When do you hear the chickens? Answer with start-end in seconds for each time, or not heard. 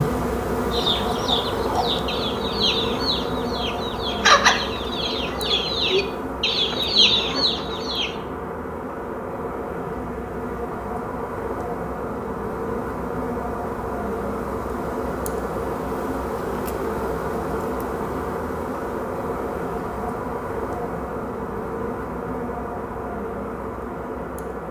0.7-8.1.